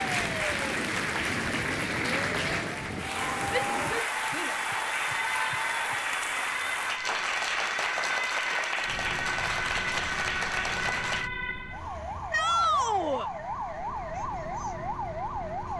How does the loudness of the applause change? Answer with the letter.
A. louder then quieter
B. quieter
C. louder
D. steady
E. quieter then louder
D.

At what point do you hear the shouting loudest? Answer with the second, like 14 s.
13 s.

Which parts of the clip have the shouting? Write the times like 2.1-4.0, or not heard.
3.7-4.5, 12.3-13.3.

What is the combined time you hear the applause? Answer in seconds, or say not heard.
11 s.